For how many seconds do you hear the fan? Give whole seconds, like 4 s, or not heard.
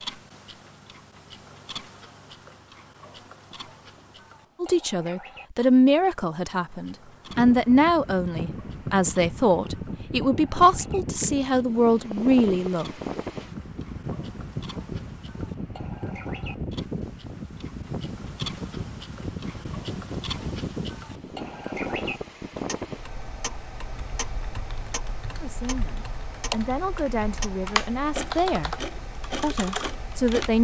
23 s.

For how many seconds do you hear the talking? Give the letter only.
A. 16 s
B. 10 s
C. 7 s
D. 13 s
D.